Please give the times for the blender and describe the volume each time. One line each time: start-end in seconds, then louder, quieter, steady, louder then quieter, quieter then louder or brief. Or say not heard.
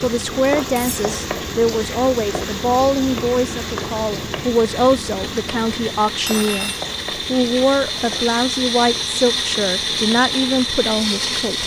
0.2-11.6 louder.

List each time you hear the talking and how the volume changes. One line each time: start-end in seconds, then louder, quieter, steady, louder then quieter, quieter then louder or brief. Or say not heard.
0.0-11.6 steady.